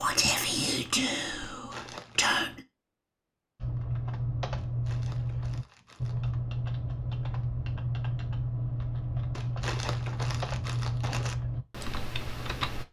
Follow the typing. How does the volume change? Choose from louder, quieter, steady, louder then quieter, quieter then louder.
steady.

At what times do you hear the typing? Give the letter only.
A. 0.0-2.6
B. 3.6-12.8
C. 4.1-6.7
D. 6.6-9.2
B.